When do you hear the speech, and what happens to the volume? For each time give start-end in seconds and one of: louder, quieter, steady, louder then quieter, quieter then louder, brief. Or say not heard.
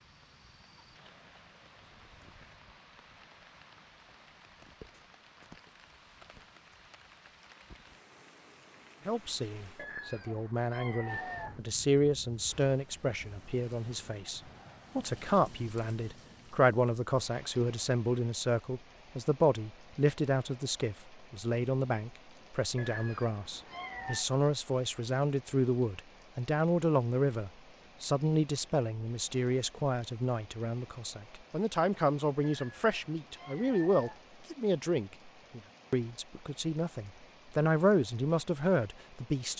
9.1-39.5 steady.